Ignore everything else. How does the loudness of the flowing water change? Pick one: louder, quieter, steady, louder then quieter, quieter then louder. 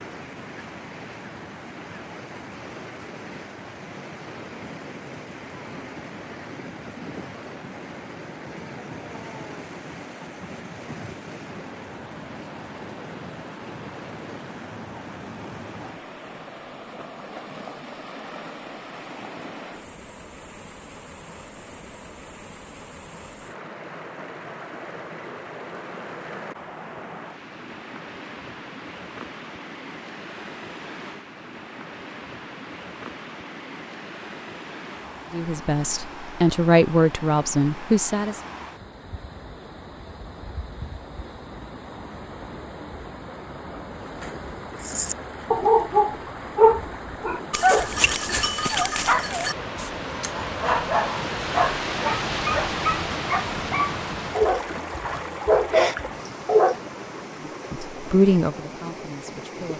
louder.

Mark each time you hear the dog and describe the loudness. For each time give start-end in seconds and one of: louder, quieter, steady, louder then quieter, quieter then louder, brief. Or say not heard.
44.8-56.8 quieter then louder.